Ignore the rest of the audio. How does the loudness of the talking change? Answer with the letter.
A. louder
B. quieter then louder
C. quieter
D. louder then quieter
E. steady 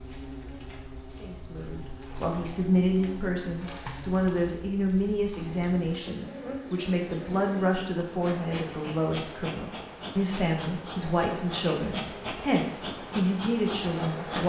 E.